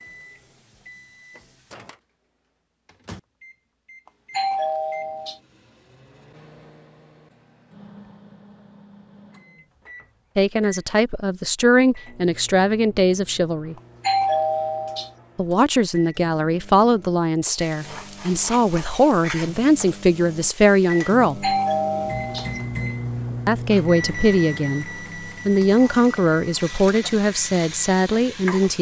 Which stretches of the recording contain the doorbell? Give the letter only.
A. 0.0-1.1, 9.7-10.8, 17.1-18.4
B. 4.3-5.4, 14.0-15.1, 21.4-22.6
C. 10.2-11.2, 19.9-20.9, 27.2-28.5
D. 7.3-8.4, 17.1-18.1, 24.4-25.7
B.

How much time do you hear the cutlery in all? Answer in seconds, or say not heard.
not heard.